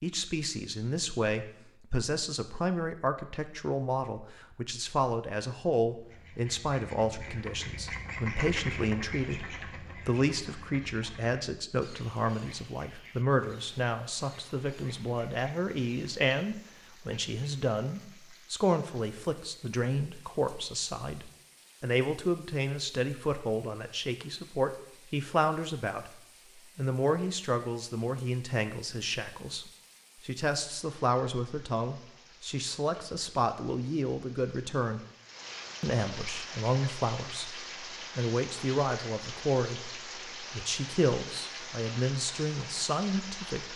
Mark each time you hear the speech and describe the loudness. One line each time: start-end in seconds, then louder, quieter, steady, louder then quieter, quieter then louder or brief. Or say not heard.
0.0-35.0 steady
35.8-43.7 steady.